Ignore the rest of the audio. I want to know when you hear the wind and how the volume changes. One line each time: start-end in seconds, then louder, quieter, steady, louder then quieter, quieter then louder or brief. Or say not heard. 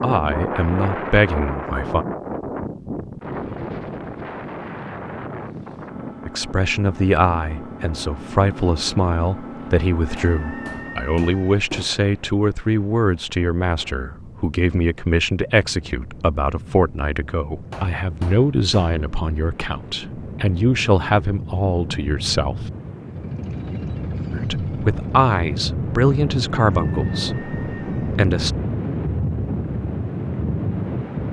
0.0-31.2 quieter then louder.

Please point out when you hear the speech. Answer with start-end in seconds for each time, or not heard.
0.0-2.0, 6.2-22.7, 24.3-28.5.